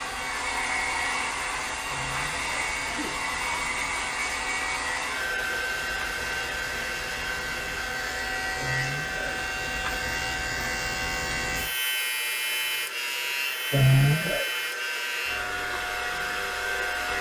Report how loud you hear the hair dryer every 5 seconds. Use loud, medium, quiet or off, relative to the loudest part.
loud, loud, medium, loud.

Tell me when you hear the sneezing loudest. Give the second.
14 s.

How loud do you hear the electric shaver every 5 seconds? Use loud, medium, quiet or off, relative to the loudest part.
medium, loud, loud, loud.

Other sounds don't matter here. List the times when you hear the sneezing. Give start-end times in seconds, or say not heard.
1.9-3.2, 8.6-9.4, 13.7-14.4.